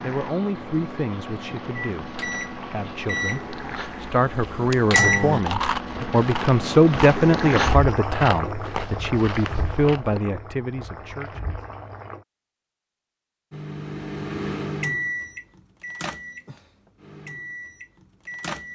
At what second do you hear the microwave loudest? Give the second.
5 s.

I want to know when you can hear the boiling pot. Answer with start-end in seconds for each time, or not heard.
0.0-12.2.